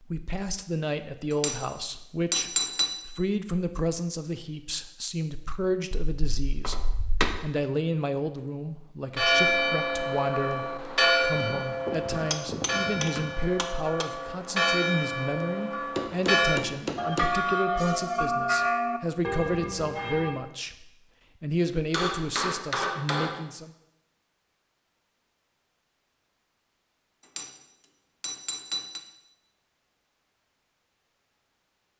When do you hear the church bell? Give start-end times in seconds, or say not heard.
9.2-20.4.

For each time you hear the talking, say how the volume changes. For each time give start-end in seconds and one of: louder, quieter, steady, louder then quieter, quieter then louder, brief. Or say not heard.
0.0-23.7 steady.